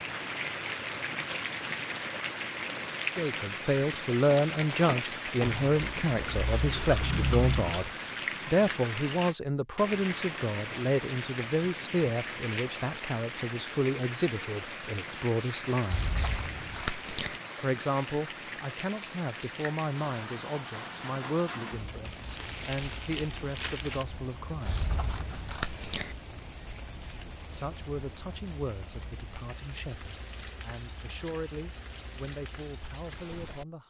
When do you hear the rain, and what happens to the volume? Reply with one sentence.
You can hear the rain from 0.0 to 33.8 s, getting quieter.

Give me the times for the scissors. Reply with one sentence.
You can hear the scissors from 5.4 to 8.0 s, from 15.9 to 17.4 s and from 24.6 to 26.1 s.